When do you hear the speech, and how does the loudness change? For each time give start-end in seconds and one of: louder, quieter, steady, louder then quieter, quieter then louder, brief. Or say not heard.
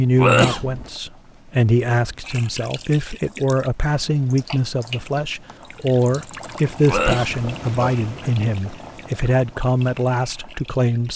0.0-11.1 steady.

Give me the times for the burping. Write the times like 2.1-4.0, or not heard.
0.1-0.9, 6.8-8.0.